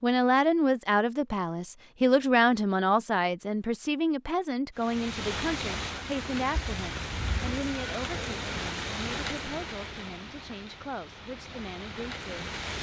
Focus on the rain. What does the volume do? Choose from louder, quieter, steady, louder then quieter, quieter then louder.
quieter.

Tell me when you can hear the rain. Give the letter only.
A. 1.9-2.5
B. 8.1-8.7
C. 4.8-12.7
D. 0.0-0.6
C.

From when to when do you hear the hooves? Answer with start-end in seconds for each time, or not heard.
not heard.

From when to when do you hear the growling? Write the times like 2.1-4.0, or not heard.
8.1-8.7.